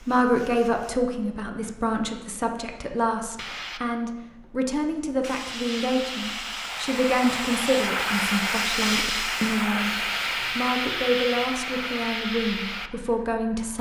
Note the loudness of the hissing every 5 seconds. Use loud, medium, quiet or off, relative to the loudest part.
quiet, loud, loud.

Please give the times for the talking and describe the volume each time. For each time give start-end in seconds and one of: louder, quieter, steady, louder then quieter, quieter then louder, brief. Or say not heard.
0.0-13.7 steady.